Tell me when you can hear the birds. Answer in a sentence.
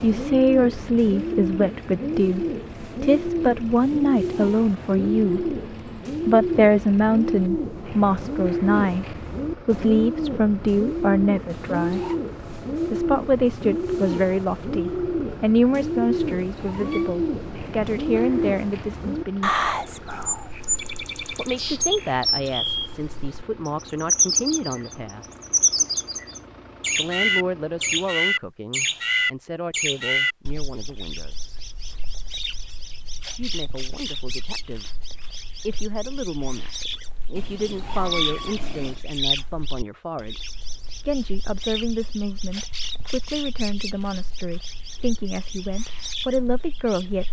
You can hear the birds from 0.0 to 47.2 s.